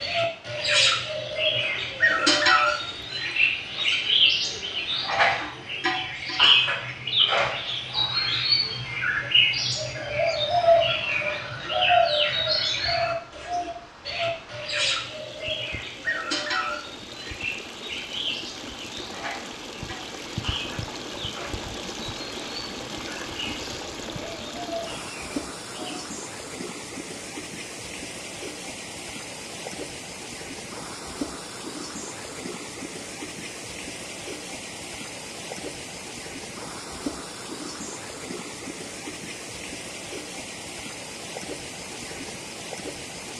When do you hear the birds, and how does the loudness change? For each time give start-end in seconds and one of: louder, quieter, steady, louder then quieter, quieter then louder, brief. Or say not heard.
0.0-25.9 quieter.